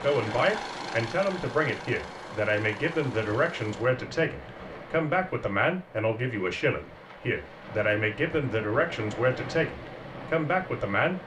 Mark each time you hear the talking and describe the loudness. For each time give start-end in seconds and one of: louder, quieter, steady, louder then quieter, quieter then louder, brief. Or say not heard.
0.0-11.2 steady.